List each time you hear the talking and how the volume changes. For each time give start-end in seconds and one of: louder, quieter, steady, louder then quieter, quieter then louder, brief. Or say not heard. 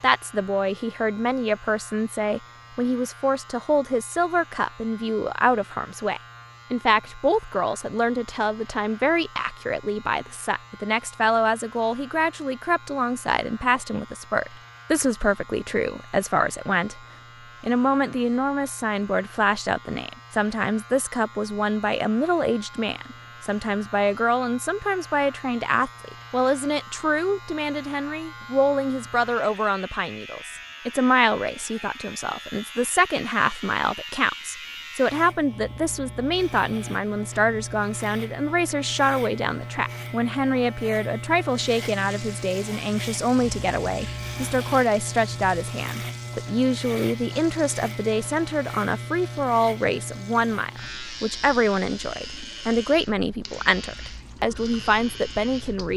0.0-17.0 steady
17.6-55.9 steady.